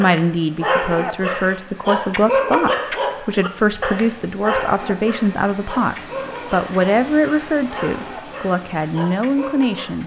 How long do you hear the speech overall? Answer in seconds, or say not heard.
10 s.